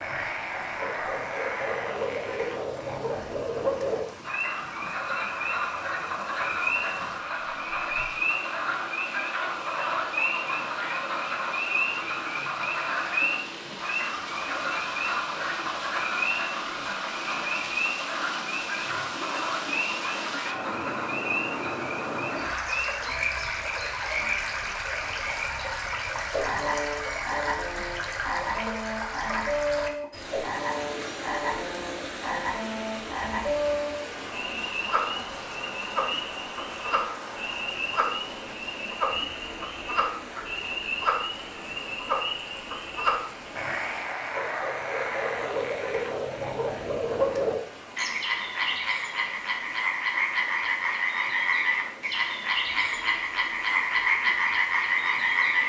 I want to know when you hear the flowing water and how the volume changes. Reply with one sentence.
You can hear the flowing water from 0.0 to 55.6 s, getting louder then quieter.